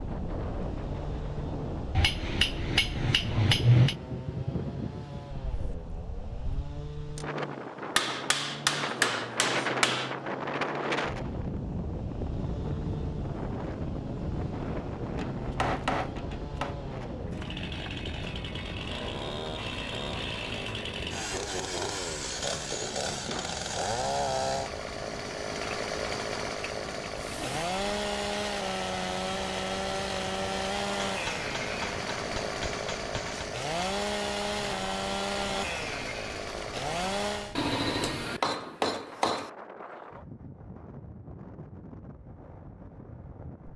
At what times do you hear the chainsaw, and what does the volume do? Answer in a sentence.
The chainsaw can be heard from 0.0 to 37.6 s, getting louder.